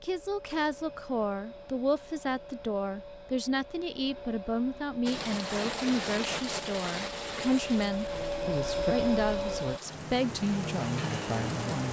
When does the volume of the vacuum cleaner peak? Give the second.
9 s.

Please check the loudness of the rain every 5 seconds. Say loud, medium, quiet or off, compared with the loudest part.
off, loud, loud.